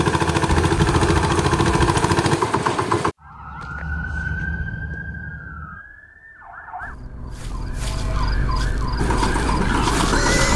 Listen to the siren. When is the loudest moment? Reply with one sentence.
The volume of the siren peaks at 10 seconds.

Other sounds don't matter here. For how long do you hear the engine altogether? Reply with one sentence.
You can hear the engine for 5 seconds altogether.